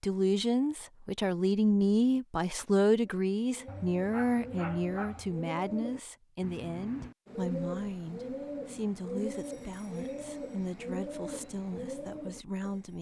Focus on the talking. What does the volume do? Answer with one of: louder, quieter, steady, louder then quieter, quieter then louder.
quieter.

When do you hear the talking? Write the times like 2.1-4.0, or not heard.
0.0-12.9.